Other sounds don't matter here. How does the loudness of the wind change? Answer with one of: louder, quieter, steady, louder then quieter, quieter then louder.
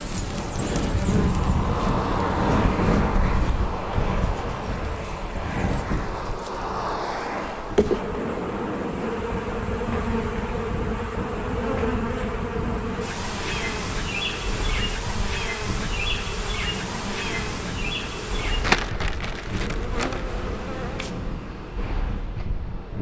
quieter.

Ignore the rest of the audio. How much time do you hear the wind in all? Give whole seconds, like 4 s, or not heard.
23 s.